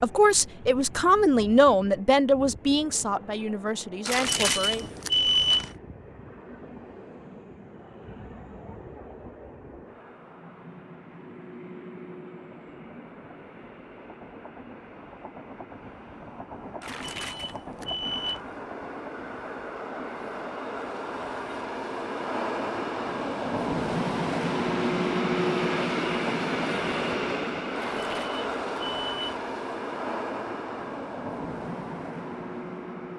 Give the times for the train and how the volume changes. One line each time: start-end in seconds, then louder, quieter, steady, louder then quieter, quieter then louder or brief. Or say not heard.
0.0-33.1 louder.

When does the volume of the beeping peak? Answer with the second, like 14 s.
5 s.